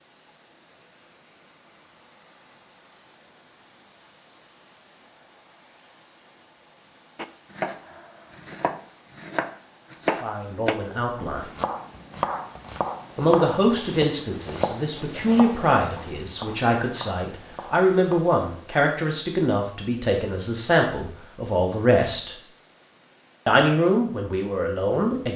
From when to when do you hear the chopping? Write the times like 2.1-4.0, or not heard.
7.2-18.2.